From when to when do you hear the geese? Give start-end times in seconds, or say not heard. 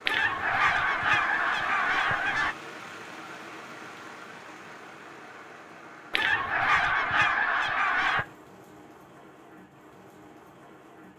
0.1-2.5, 6.1-8.2.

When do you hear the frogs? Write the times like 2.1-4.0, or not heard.
not heard.